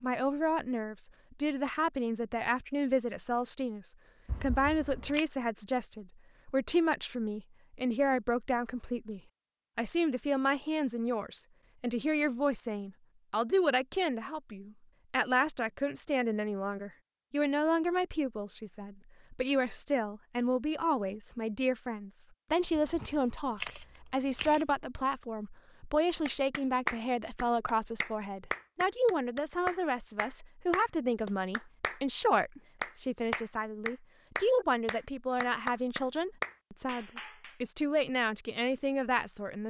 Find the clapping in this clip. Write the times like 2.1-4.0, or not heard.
26.2-32.0, 32.8-37.5.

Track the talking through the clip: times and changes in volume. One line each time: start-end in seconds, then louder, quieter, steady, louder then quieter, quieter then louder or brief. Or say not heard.
0.0-39.6 steady.